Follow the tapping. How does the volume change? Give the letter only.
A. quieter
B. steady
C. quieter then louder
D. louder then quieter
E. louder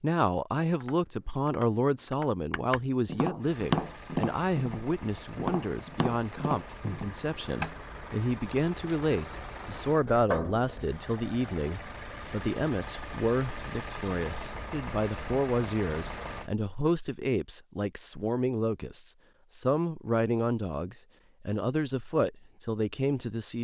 D.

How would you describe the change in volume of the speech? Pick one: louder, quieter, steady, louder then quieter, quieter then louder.
steady.